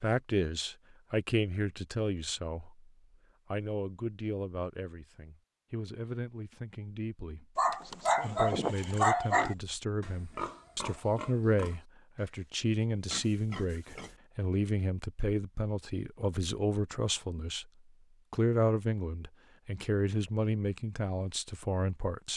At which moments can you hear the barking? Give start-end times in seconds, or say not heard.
7.5-9.6.